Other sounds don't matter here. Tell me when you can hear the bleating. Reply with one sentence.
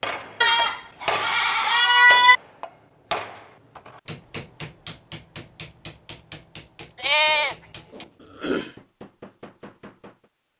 You can hear the bleating from 0.4 to 2.4 s and from 7.0 to 8.7 s.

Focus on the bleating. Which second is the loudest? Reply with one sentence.
The loudest moment of the bleating is at 2 seconds.